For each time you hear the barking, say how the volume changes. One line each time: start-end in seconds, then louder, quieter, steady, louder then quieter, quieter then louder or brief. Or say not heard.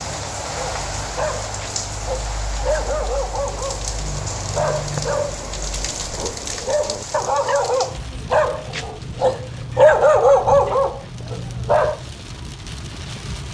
0.5-12.1 louder.